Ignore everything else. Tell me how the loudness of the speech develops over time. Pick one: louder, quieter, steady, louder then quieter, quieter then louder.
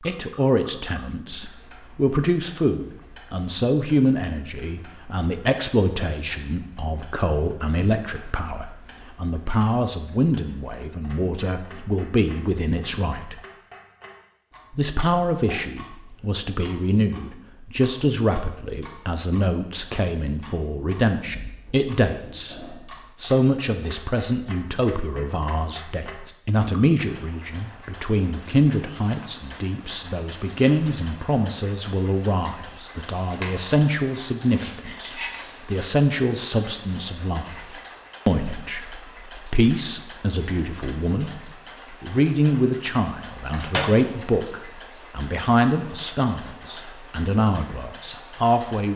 steady.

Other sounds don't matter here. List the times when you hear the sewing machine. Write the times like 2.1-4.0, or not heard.
not heard.